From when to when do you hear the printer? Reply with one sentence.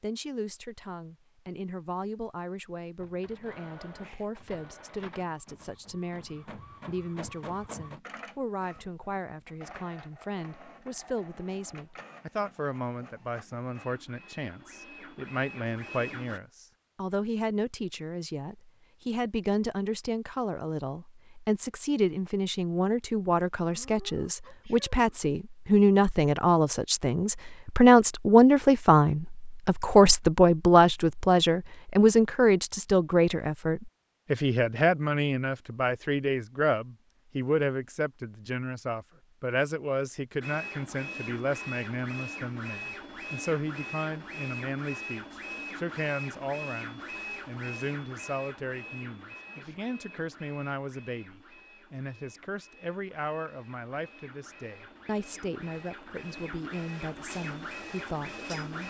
The printer can be heard from 3.0 to 16.4 s and from 40.4 to 58.8 s.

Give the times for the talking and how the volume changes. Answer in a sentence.
You can hear the talking from 0.0 to 58.8 s, getting louder then quieter.